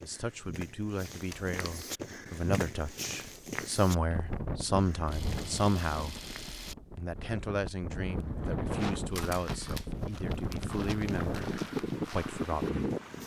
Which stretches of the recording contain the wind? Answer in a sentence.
You can hear the wind from 4.1 to 13.2 s.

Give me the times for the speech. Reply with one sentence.
The speech can be heard from 0.0 to 6.2 s and from 7.0 to 12.8 s.